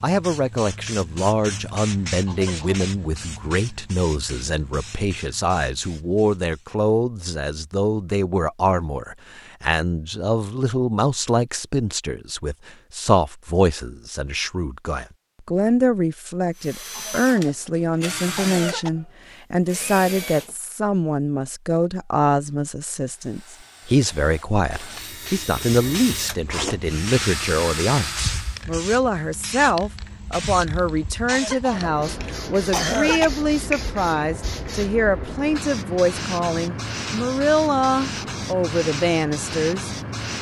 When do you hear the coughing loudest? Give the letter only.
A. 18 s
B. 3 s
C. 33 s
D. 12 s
C.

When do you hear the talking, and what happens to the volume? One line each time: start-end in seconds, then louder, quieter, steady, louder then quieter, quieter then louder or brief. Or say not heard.
0.0-39.9 steady.